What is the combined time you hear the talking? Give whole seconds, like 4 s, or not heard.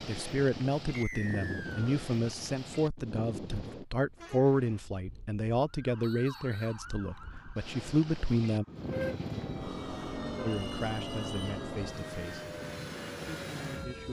11 s.